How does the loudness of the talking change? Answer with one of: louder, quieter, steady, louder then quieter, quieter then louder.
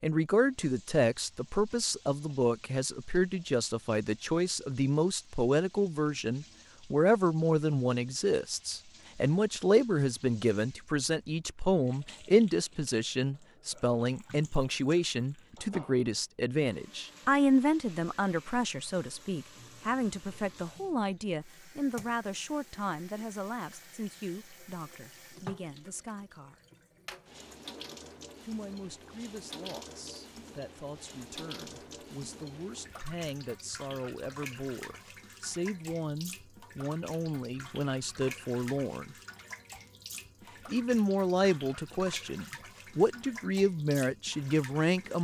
quieter then louder.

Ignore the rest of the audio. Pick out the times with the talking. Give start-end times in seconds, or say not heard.
0.0-26.6, 28.4-39.1, 40.6-45.2.